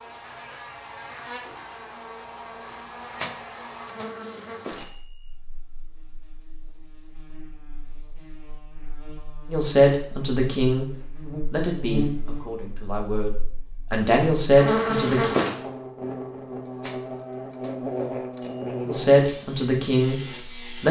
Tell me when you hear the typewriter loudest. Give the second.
3 s.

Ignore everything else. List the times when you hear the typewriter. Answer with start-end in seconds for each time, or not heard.
3.0-5.3, 16.6-18.8.